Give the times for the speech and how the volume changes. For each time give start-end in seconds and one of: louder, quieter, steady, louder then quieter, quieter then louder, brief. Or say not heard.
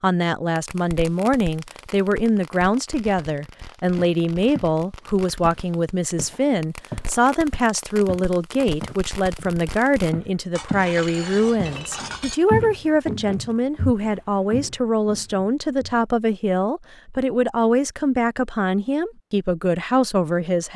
0.0-20.7 steady.